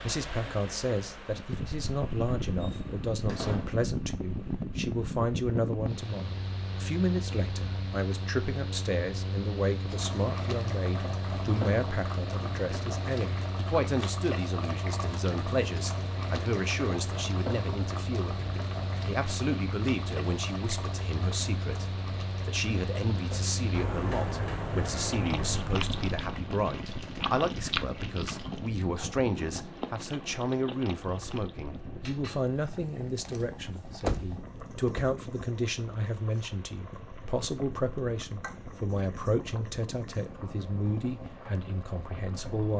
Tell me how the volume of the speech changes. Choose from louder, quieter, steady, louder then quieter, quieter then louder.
steady.